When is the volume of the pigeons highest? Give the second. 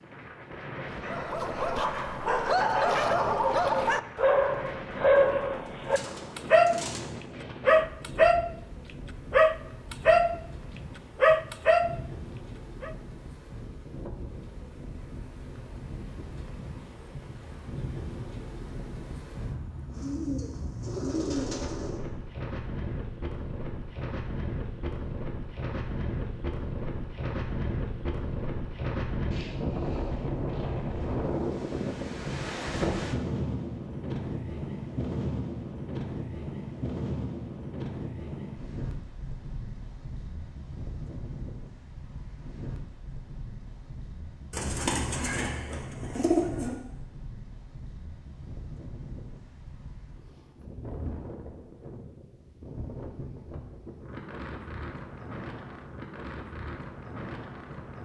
46 s.